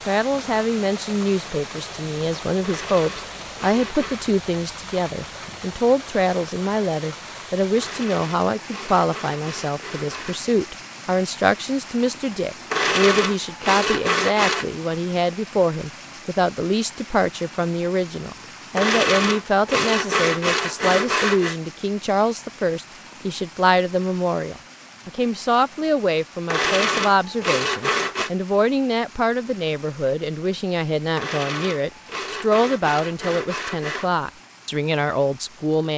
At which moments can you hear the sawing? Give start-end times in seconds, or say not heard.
2.6-4.2, 7.8-10.4, 12.7-14.7, 18.8-21.6, 26.4-28.3, 31.1-34.1.